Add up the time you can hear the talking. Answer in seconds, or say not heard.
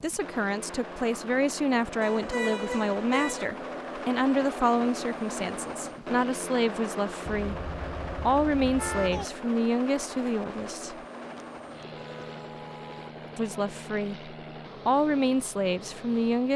14 s.